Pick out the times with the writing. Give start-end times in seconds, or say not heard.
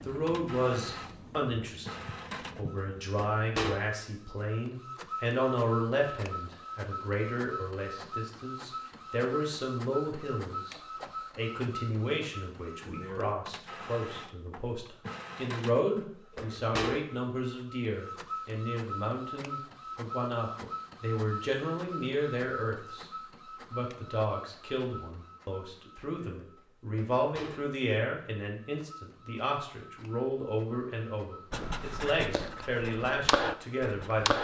0.0-3.1, 31.5-34.3.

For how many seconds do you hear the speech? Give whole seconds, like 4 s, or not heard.
34 s.